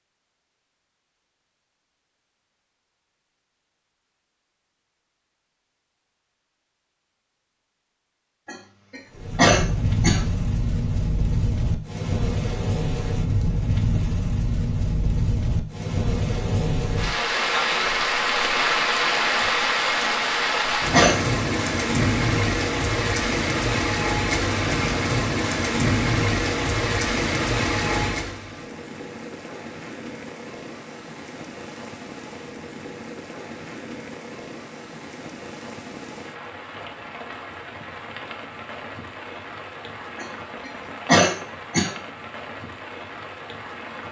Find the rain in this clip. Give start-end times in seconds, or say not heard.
9.1-44.0.